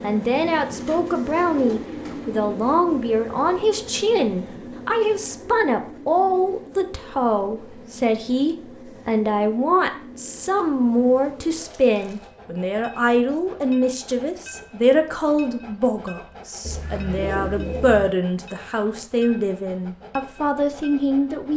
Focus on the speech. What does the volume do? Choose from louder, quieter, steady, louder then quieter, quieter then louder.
steady.